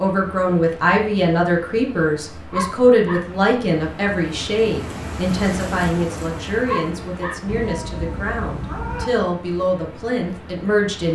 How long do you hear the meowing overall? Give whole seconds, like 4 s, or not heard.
2 s.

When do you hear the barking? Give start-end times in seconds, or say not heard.
2.5-3.2, 6.7-7.3.